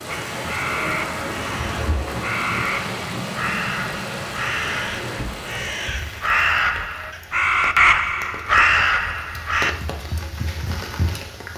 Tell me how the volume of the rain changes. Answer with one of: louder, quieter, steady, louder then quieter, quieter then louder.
quieter then louder.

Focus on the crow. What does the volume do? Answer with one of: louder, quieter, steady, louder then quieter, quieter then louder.
louder.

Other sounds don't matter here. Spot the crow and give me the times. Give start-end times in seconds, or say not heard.
0.1-9.8.